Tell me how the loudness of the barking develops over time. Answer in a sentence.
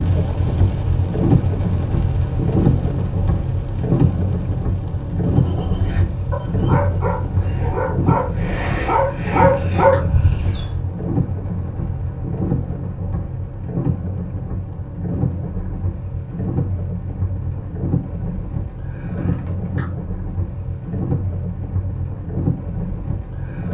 The loudness of the barking goes up.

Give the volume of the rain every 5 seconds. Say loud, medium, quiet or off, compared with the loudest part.
loud, loud, medium, medium, medium.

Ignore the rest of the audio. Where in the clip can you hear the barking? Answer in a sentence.
You can hear the barking from 5.3 to 10.7 s.